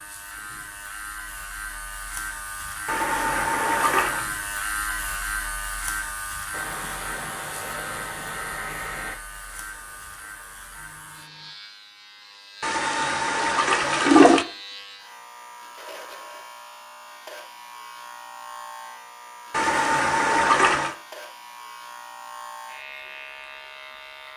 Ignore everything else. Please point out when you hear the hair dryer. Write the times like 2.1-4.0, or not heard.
6.5-11.6.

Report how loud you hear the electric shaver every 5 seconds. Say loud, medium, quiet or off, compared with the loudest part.
loud, loud, medium, medium, medium.